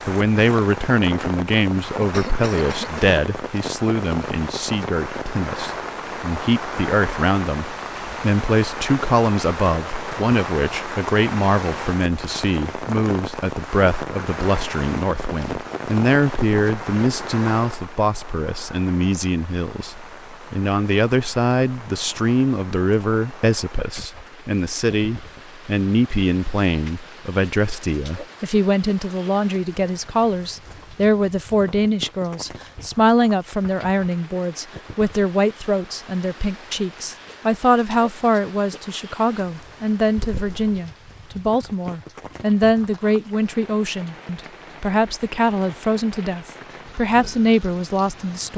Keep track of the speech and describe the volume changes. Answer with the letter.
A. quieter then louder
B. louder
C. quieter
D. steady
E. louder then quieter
D.